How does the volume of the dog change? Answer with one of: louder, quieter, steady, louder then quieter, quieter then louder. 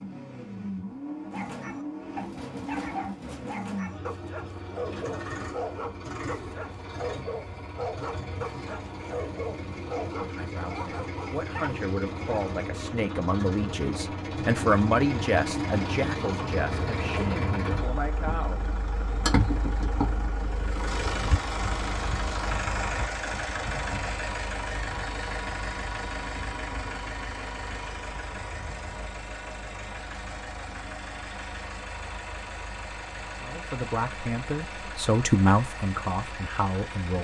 steady.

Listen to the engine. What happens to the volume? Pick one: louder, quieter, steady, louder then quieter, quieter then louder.
louder then quieter.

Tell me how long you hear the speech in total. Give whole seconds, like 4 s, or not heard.
12 s.